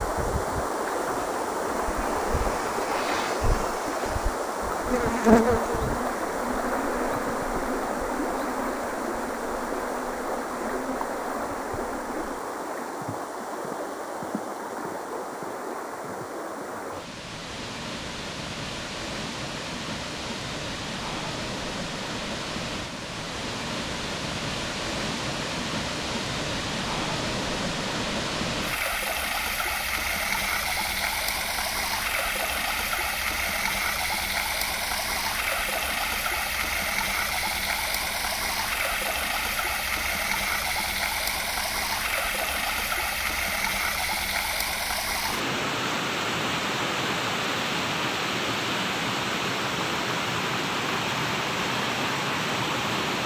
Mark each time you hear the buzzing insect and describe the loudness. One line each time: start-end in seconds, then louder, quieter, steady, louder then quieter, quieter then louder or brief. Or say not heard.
0.0-12.4 louder then quieter.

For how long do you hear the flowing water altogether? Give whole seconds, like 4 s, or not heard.
53 s.